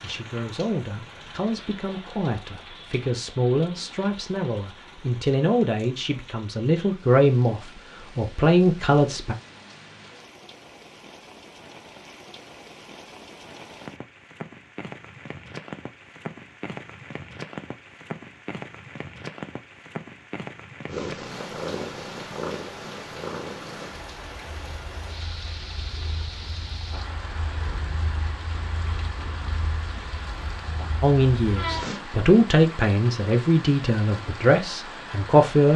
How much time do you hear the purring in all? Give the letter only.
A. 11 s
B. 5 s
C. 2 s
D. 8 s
A.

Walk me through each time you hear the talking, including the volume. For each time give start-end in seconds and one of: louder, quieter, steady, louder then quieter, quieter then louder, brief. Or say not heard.
0.0-9.3 louder
31.0-35.7 louder then quieter.